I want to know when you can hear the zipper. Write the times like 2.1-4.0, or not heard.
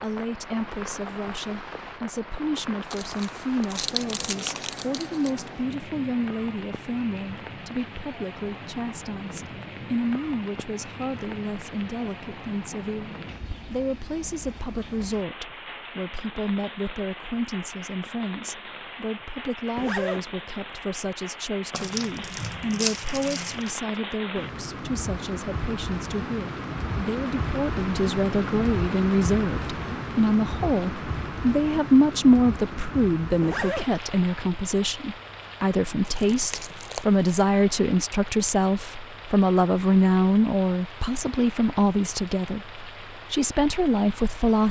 19.8-20.2, 33.4-33.9.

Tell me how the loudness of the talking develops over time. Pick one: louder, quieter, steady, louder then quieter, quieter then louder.
louder.